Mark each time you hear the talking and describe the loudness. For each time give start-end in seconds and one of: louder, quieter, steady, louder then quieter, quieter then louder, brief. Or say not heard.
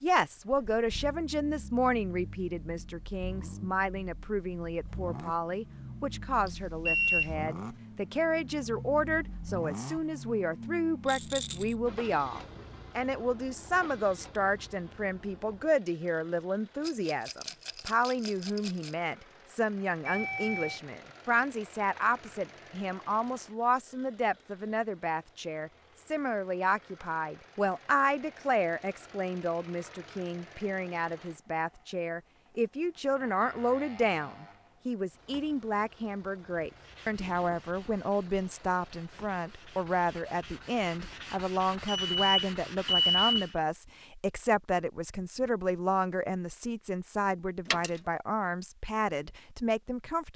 0.0-50.3 steady.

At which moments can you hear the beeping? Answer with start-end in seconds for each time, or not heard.
6.5-7.3, 20.1-20.8, 41.9-43.5.